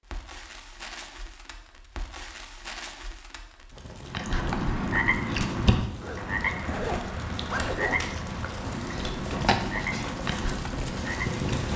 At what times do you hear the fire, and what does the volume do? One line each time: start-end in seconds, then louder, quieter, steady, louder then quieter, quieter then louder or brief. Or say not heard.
0.0-11.7 louder.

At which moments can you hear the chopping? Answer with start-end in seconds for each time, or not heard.
not heard.